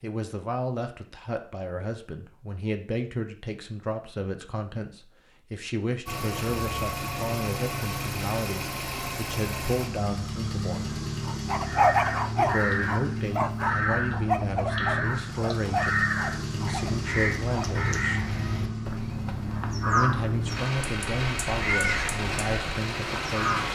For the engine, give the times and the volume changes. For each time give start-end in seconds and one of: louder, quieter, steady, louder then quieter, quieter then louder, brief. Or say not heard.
6.0-23.6 steady.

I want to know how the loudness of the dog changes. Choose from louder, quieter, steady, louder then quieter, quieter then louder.
quieter.